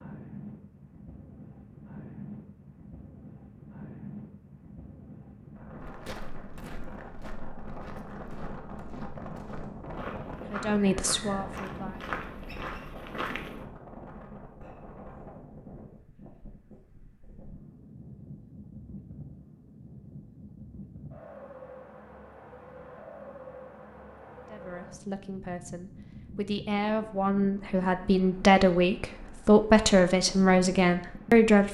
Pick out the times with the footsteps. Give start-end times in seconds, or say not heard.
5.8-13.7.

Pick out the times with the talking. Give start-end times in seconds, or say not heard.
10.3-12.2, 24.5-31.7.